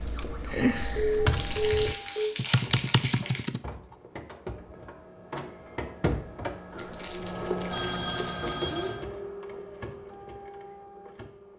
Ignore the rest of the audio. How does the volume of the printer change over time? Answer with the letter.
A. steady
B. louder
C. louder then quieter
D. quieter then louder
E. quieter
C.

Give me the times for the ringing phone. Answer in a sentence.
The ringing phone can be heard from 1.0 to 2.4 s and from 7.7 to 9.1 s.